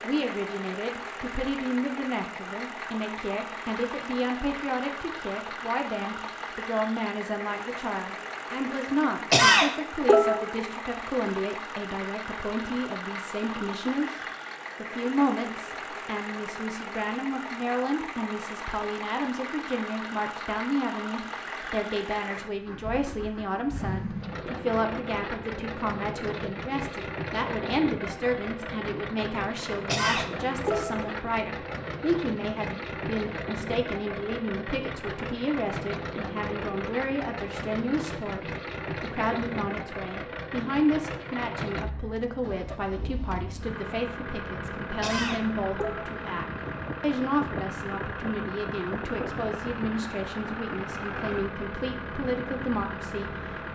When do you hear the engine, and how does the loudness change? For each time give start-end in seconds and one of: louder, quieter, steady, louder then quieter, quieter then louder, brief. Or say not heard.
0.0-53.7 steady.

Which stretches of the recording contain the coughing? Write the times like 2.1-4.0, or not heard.
9.3-10.7, 29.9-31.0, 45.0-46.2.